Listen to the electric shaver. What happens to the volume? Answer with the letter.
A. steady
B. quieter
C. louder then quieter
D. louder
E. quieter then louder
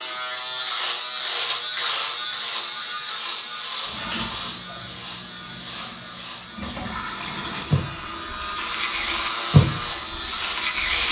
E.